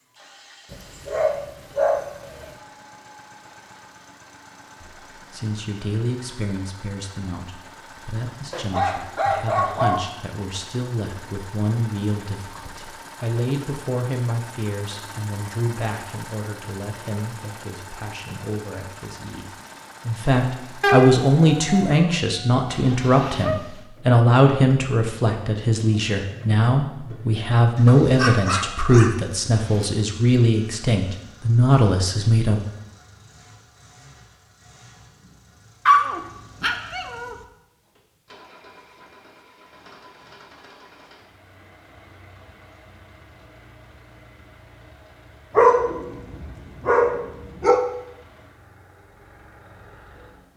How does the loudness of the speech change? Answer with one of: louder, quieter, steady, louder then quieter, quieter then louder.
louder.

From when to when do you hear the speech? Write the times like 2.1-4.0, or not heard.
4.8-32.6.